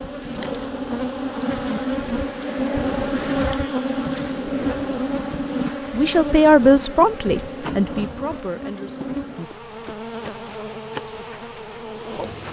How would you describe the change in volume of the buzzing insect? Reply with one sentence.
The volume of the buzzing insect goes down.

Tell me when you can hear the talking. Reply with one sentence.
You can hear the talking from 5.9 to 9.1 s.